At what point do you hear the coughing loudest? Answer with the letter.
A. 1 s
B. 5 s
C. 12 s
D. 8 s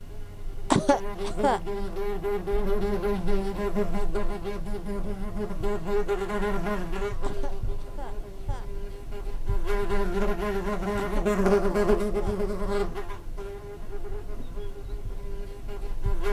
A.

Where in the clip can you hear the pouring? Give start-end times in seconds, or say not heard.
not heard.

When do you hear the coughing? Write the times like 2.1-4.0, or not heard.
0.7-1.6, 7.2-8.7, 10.9-12.4.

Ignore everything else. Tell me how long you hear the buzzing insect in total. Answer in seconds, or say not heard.
16 s.